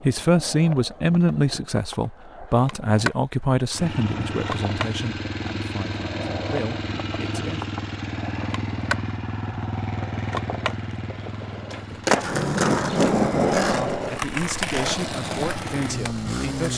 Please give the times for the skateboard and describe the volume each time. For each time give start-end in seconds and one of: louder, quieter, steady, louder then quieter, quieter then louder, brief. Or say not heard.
0.0-16.7 louder.